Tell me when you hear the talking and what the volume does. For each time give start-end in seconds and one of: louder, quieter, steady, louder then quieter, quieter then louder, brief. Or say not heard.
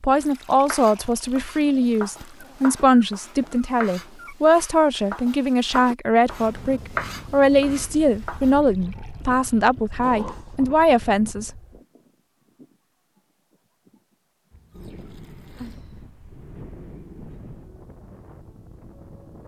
0.0-11.5 steady.